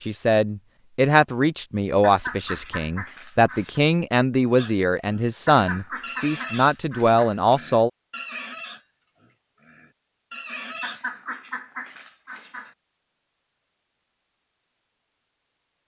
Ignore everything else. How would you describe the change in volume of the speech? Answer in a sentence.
The volume of the speech stays about the same.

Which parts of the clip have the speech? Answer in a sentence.
You can hear the speech from 0.0 to 7.9 s.